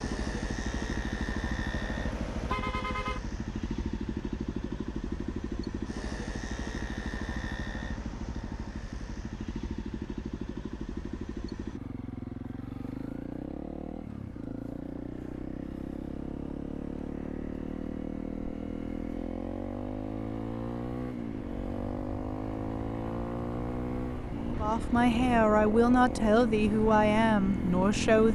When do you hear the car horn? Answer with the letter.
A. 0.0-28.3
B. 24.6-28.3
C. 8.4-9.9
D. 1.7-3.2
D.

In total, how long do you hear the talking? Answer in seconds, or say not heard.
4 s.